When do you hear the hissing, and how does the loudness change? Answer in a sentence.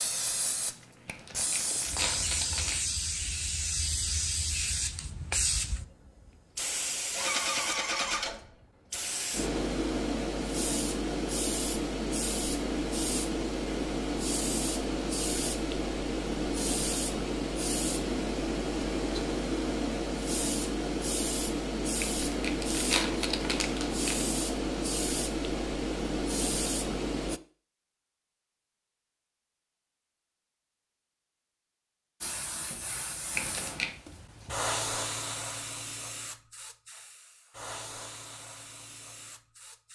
The hissing can be heard from 0.0 to 27.4 s, at a steady volume; and from 32.2 to 39.9 s, getting louder then quieter.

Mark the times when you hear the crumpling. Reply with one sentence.
You can hear the crumpling from 1.1 to 2.8 s, from 22.0 to 24.2 s and from 33.4 to 34.0 s.